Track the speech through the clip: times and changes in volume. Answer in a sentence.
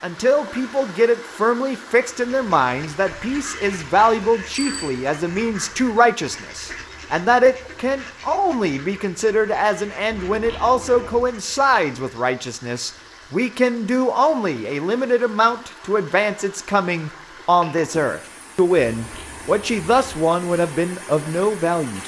You can hear the speech from 0.0 to 22.0 s, at a steady volume.